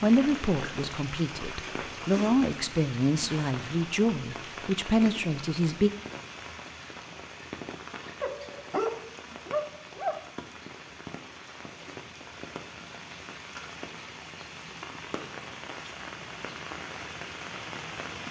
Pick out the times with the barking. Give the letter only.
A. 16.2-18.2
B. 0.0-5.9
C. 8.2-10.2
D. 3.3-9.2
C.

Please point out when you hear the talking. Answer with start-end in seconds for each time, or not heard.
0.0-5.9.